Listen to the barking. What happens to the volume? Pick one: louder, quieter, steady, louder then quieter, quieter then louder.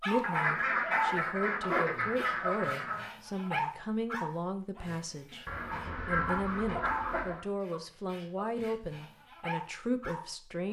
quieter then louder.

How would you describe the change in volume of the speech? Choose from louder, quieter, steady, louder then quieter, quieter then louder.
steady.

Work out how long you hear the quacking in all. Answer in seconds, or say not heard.
5 s.